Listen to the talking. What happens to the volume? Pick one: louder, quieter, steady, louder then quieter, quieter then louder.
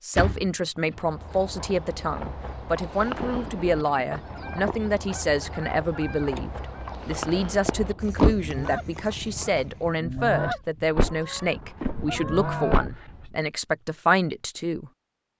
steady.